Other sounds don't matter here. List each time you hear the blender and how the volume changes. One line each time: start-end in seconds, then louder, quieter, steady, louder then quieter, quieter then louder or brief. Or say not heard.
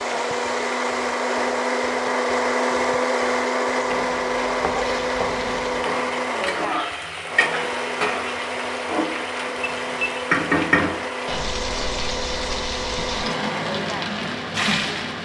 0.0-14.9 quieter.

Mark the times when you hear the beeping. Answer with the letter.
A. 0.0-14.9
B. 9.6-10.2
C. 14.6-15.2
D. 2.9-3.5
B.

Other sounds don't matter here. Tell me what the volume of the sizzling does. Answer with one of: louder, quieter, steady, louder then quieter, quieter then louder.
louder.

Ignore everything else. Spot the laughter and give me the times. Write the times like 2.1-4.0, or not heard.
not heard.